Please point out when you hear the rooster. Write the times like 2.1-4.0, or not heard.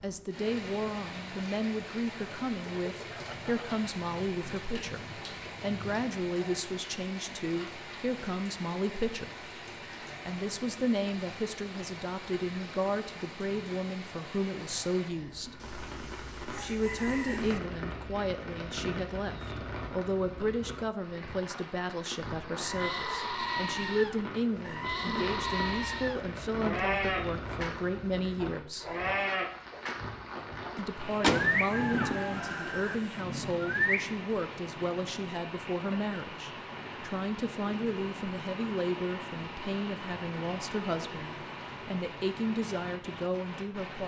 2.6-3.8, 15.6-17.6, 31.4-33.0.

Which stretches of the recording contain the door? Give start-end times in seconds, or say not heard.
30.8-32.5.